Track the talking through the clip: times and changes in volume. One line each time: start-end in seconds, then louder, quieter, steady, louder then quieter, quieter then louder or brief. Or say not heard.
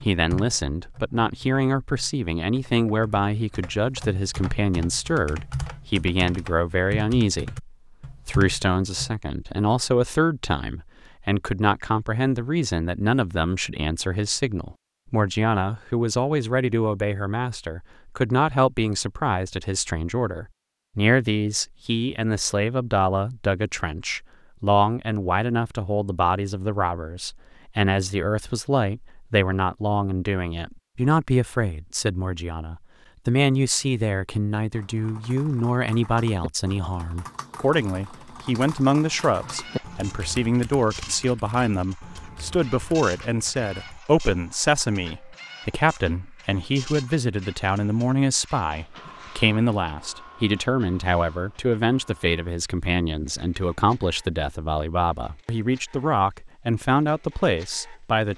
0.0-58.3 steady.